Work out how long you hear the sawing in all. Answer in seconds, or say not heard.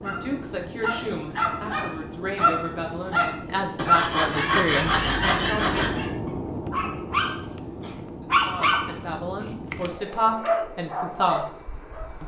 2 s.